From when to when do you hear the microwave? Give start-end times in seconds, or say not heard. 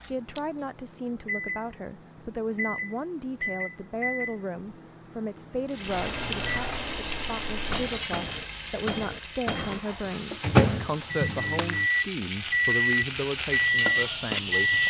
0.0-14.8.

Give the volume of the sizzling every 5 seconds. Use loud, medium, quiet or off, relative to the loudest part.
off, loud, loud.